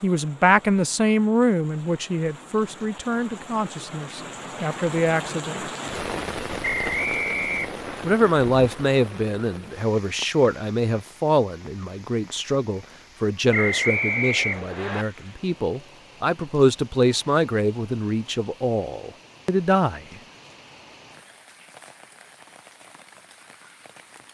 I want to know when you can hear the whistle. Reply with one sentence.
The whistle can be heard from 6.6 to 8.1 s and from 13.5 to 15.1 s.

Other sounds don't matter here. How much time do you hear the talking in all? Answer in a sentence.
You can hear the talking for 18 seconds altogether.